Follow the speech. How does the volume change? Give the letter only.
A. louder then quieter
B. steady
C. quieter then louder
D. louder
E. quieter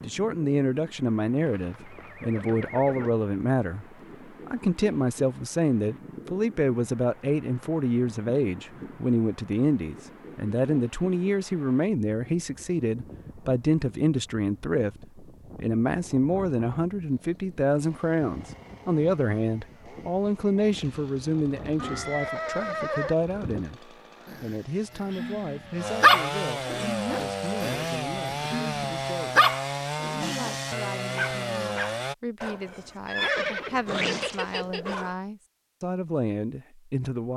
E.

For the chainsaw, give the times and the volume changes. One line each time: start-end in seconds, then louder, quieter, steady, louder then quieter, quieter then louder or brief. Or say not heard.
17.1-32.1 louder.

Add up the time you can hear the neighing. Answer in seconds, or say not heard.
5 s.